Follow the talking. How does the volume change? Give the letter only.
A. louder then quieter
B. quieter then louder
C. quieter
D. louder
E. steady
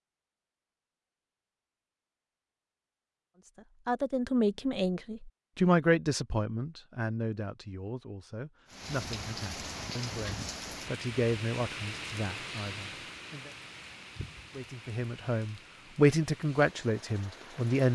B.